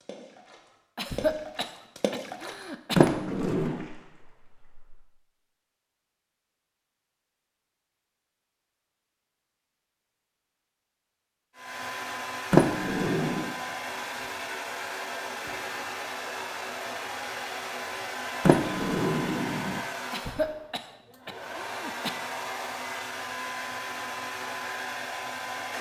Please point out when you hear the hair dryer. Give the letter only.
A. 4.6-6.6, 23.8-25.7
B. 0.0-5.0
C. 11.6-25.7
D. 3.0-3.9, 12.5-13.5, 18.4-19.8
C.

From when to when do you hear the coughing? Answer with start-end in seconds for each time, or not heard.
0.9-3.0, 20.1-22.1.